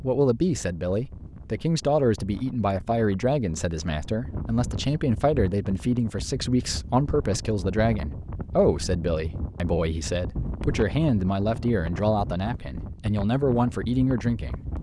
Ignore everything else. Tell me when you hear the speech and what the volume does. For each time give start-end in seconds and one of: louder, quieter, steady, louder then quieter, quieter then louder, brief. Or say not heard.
0.0-14.6 steady.